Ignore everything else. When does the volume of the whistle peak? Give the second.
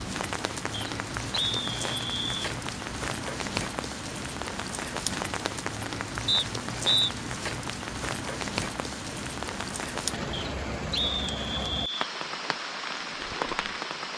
7 s.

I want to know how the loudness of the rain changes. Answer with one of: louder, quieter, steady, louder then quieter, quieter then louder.
steady.